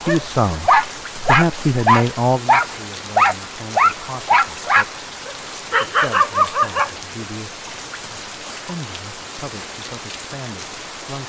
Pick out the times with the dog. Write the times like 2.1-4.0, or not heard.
0.0-6.9.